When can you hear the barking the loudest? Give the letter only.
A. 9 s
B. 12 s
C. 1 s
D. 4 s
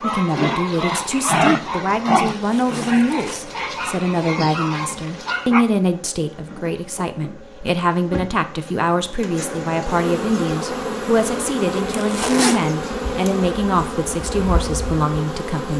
C.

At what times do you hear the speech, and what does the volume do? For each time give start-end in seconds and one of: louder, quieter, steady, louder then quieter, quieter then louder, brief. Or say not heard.
0.0-15.7 steady.